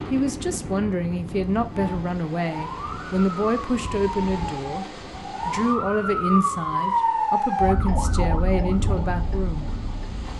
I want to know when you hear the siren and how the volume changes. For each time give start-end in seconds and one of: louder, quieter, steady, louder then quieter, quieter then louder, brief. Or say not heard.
1.7-10.3 louder then quieter.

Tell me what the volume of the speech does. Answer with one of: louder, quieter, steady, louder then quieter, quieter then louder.
steady.